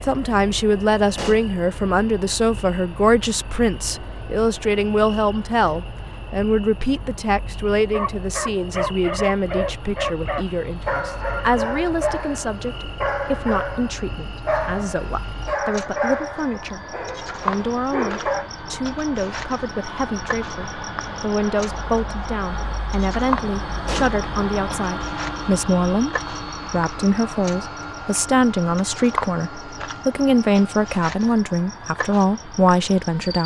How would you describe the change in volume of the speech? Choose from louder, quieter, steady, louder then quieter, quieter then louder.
quieter then louder.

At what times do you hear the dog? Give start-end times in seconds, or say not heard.
7.9-18.5.